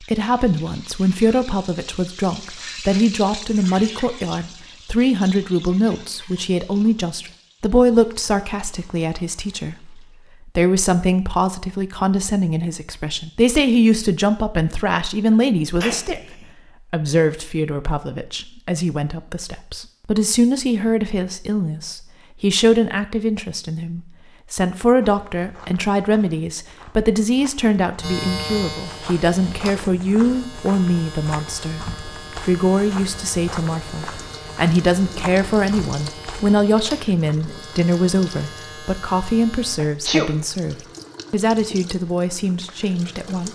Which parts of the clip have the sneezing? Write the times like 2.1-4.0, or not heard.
15.3-16.4, 39.8-40.3.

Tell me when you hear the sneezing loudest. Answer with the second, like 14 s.
40 s.